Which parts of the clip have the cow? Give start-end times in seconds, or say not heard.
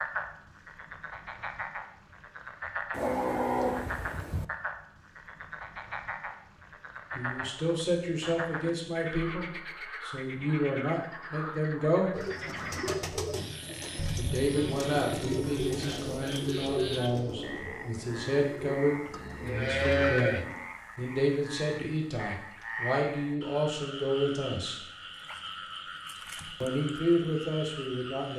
2.9-4.5, 13.9-15.7, 19.1-20.4.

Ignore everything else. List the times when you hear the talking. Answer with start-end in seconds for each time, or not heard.
7.1-12.2, 14.2-24.8, 26.6-28.3.